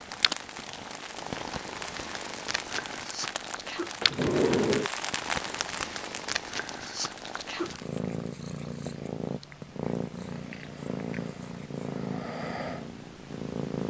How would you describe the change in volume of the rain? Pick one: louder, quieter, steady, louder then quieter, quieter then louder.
louder then quieter.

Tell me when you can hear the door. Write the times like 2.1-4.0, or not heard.
4.0-4.9.